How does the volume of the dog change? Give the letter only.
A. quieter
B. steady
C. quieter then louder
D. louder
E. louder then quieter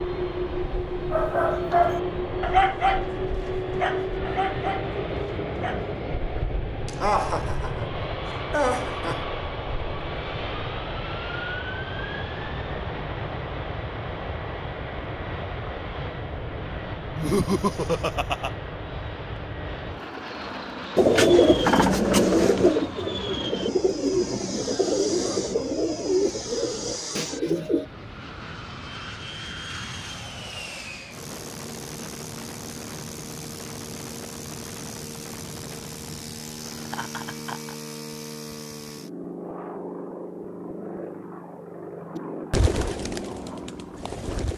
A.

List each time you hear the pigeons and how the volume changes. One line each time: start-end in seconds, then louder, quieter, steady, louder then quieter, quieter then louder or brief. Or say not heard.
20.9-27.9 quieter
42.1-44.5 brief.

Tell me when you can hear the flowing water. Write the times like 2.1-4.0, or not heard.
not heard.